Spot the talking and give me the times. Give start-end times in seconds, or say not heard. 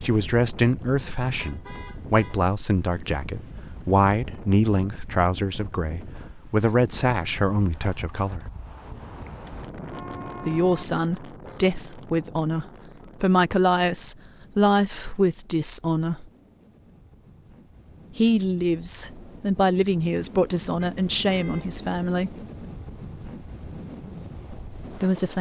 0.0-8.4, 10.4-16.2, 18.1-22.4, 24.9-25.3.